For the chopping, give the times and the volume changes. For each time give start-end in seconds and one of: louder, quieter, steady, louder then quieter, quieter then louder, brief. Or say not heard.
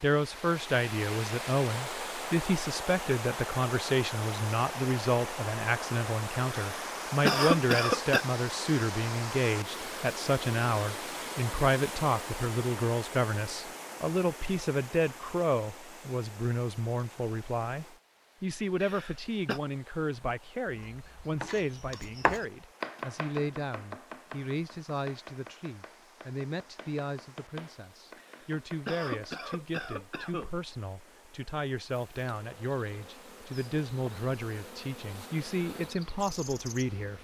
20.6-29.4 quieter then louder.